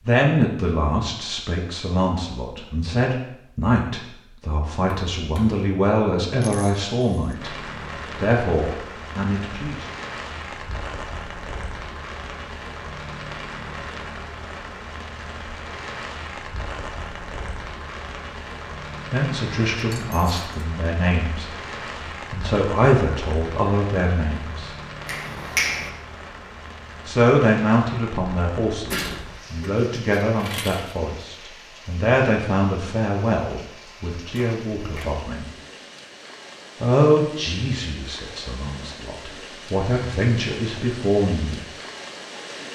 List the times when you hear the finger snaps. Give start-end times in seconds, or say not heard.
4.8-5.7, 25.1-25.9, 34.4-35.1.